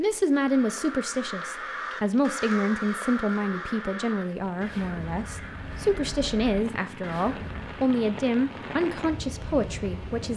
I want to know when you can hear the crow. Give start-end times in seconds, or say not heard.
0.3-7.9.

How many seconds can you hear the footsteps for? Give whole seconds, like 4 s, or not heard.
not heard.